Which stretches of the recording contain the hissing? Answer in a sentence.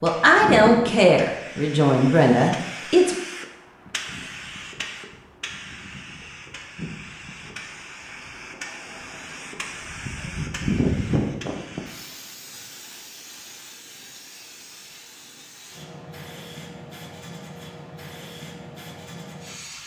The hissing can be heard from 0.0 to 19.8 s.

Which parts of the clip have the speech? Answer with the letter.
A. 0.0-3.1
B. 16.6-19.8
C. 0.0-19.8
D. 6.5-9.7
A.